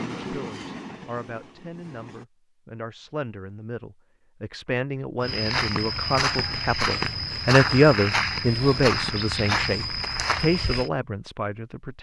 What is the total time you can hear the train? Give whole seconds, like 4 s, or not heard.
2 s.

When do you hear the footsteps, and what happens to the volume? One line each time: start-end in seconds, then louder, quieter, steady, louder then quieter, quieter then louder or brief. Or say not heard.
5.2-10.9 steady.